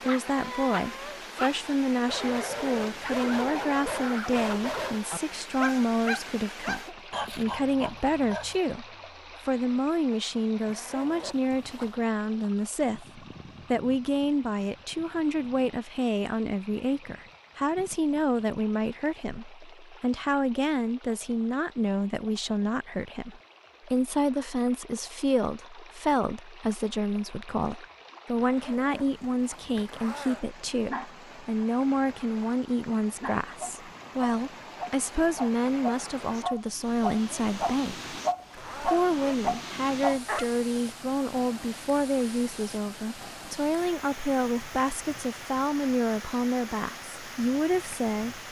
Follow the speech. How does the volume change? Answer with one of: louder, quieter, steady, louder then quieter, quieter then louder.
steady.